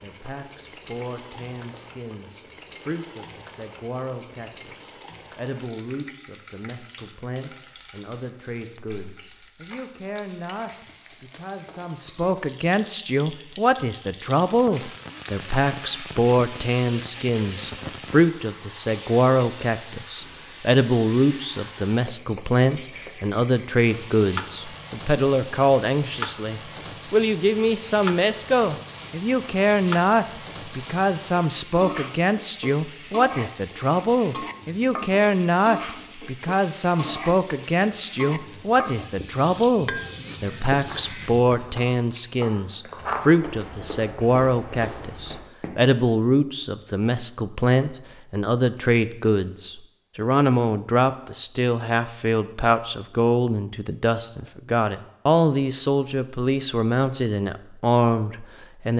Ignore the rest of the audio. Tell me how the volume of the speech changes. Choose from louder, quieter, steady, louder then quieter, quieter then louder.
louder.